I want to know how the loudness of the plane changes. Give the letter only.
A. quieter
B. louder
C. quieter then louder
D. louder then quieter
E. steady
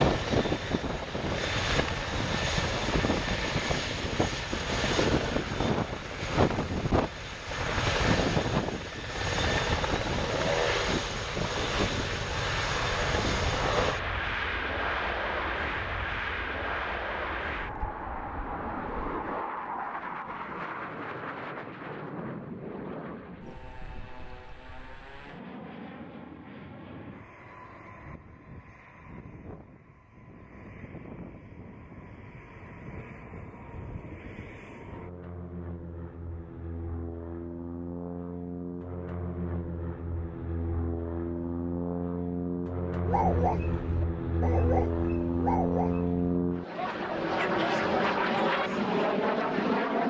C.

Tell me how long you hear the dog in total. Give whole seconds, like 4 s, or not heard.
6 s.